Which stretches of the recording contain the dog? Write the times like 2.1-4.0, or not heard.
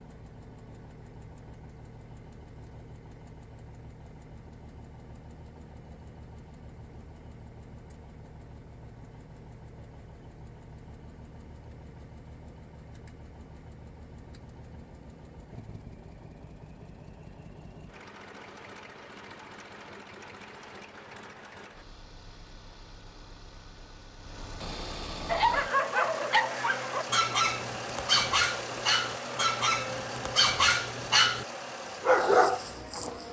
25.2-33.2.